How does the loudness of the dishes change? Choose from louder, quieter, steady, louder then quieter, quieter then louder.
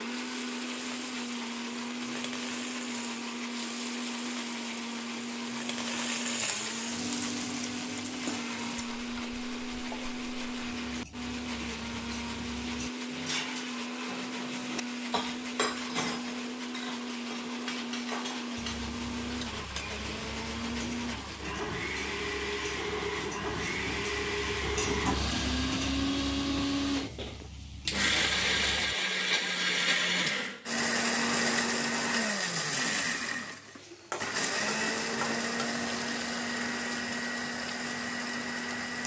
louder then quieter.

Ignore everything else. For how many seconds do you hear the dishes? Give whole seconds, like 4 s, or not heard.
7 s.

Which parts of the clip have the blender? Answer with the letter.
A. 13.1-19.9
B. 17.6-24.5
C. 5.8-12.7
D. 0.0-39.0
D.